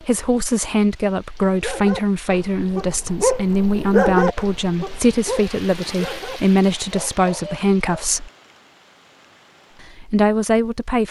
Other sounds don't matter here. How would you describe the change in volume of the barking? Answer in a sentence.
The loudness of the barking goes up, then down.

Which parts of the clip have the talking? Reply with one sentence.
The talking can be heard from 0.0 to 8.3 s and from 9.8 to 11.0 s.